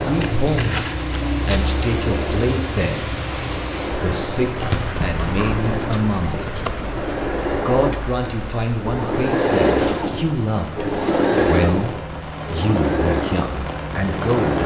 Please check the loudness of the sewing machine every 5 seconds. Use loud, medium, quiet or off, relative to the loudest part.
medium, loud, loud.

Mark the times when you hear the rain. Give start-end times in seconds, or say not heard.
0.0-14.6.